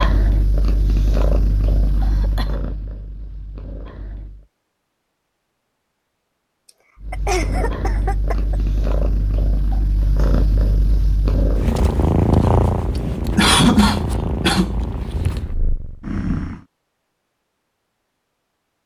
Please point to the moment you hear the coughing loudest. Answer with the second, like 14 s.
14 s.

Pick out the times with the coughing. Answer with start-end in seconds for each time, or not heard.
1.9-2.6, 7.1-8.6, 13.3-14.8.